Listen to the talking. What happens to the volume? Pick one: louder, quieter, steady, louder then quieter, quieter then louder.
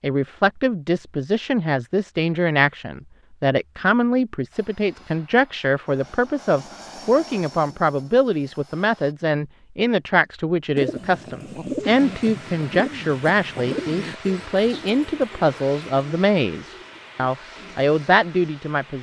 steady.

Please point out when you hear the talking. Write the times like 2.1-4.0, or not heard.
0.0-18.9.